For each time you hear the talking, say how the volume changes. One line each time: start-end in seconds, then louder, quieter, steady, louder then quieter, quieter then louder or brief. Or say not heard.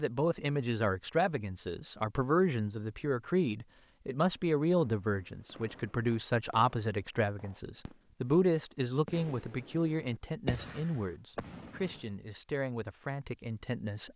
0.0-14.1 quieter.